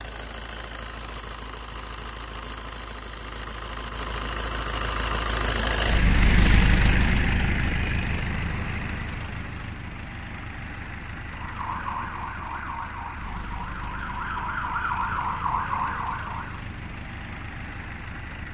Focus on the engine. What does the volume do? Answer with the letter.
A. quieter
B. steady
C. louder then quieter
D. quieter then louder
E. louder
C.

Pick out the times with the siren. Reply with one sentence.
The siren can be heard from 11.3 to 16.6 s.